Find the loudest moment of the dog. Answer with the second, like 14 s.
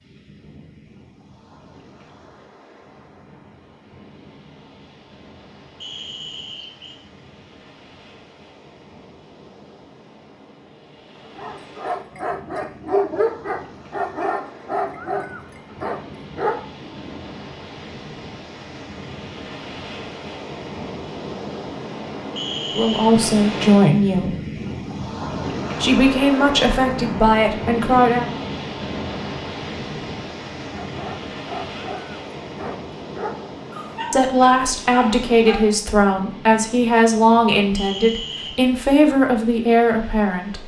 13 s.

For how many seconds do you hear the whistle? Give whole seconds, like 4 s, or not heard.
3 s.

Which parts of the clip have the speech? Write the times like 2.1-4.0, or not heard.
22.7-24.4, 25.8-28.3, 34.1-40.6.